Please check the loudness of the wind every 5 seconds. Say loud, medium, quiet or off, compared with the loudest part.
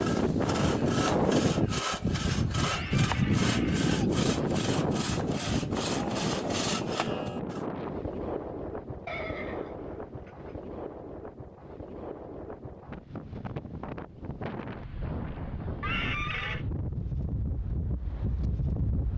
loud, medium, quiet, medium.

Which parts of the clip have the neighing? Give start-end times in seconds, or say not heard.
2.6-3.9, 9.1-10.6, 15.8-16.6.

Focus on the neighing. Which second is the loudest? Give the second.
16 s.